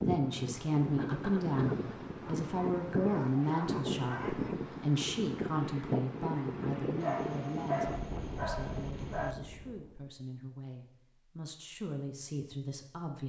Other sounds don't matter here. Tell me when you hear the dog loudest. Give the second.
8 s.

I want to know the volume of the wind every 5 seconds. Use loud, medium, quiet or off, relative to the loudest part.
loud, loud, off.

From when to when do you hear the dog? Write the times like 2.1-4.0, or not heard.
2.2-4.5, 7.0-9.3.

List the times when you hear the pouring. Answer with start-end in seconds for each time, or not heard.
not heard.